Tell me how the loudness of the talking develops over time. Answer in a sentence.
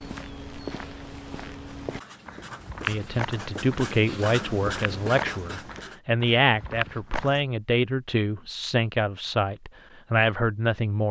The volume of the talking stays about the same.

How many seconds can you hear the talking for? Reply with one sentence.
You can hear the talking for 8 seconds altogether.